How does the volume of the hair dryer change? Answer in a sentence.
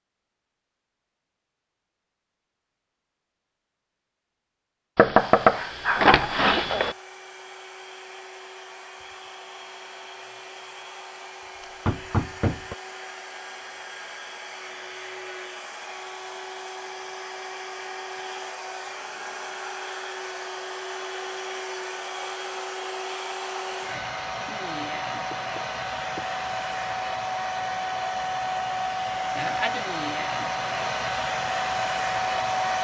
The loudness of the hair dryer goes up.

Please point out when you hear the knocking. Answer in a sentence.
You can hear the knocking from 5.0 to 7.0 s, from 11.6 to 12.8 s and from 25.3 to 26.2 s.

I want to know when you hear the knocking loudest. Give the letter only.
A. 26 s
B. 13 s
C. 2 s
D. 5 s
D.